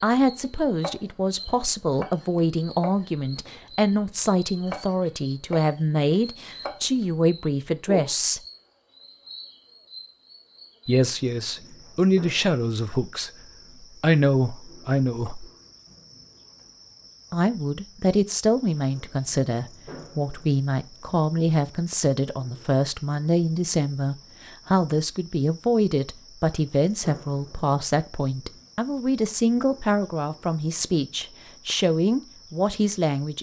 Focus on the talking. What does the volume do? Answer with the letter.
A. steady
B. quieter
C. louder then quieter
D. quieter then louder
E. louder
A.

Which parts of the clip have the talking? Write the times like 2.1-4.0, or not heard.
0.0-8.4, 10.8-15.5, 17.3-33.3.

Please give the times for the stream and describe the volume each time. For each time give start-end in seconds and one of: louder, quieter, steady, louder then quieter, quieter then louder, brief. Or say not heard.
not heard.